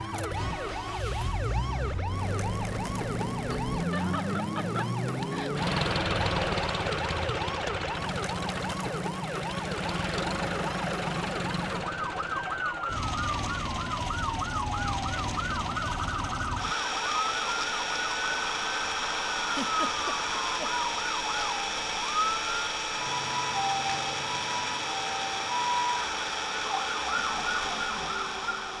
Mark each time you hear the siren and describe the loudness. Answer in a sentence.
The siren can be heard from 0.0 to 28.7 s, at a steady volume.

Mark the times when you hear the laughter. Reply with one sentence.
The laughter can be heard from 3.7 to 5.5 s and from 19.4 to 20.8 s.